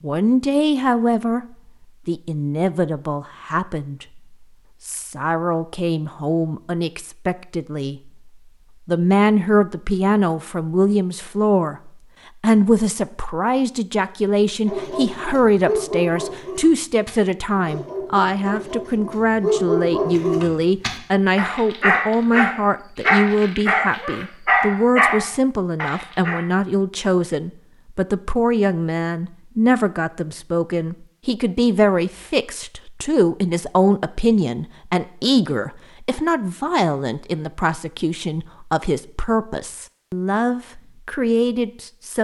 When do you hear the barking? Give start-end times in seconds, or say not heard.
14.7-26.4.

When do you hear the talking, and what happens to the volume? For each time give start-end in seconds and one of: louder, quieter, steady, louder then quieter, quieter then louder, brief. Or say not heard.
0.0-1.4 brief
2.0-42.2 steady.